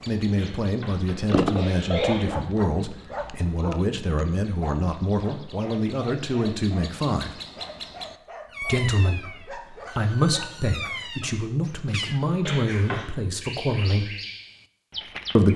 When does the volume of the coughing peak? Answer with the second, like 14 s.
2 s.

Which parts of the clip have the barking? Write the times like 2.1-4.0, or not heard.
1.1-11.5.